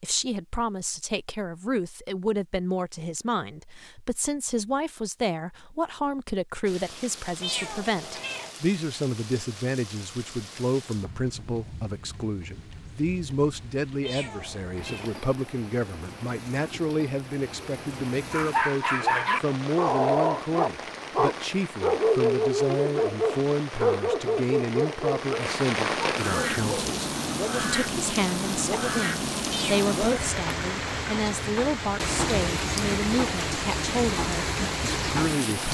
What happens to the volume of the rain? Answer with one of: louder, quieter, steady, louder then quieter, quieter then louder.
louder.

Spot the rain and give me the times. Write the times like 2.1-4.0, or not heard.
6.7-35.6.